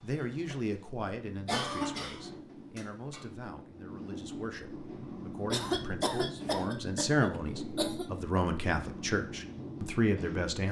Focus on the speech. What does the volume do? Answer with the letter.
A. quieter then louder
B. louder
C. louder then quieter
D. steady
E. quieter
A.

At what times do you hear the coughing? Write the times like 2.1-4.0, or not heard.
1.4-3.2, 5.5-8.1.